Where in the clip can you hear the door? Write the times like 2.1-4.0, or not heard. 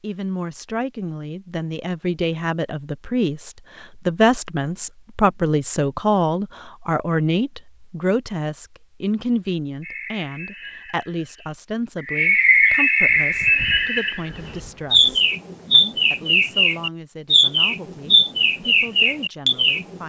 not heard.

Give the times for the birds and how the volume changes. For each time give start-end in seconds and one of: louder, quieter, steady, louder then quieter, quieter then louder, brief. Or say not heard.
9.8-20.0 louder.